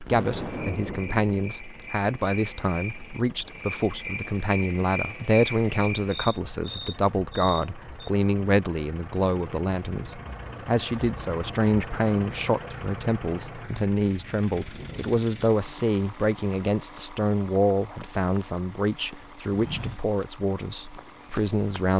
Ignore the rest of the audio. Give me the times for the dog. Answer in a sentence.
You can't hear the dog here.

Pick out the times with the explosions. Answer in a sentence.
The explosions can be heard from 0.1 to 1.4 s.